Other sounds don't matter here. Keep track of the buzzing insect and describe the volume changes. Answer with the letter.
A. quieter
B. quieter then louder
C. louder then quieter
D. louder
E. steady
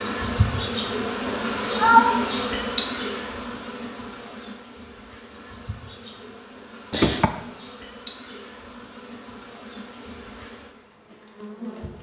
A.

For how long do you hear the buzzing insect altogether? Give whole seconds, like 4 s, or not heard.
12 s.